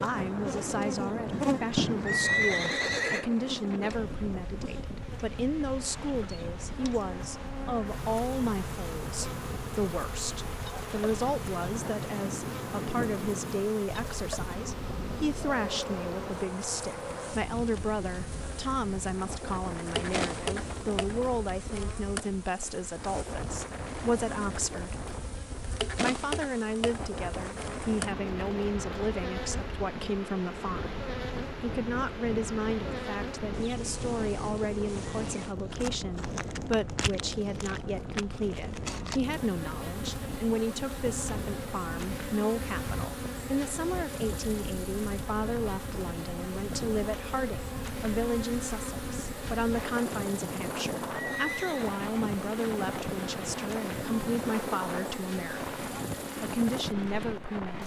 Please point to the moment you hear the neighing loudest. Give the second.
2 s.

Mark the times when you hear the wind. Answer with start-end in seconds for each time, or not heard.
0.0-57.8.